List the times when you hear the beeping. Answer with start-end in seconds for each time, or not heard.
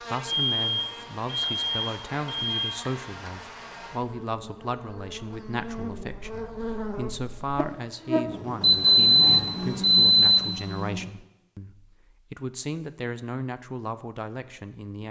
0.2-2.8, 8.6-10.4.